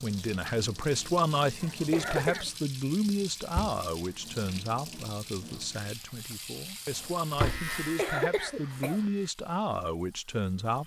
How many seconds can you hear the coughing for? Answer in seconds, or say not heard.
2 s.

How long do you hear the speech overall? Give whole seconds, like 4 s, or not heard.
11 s.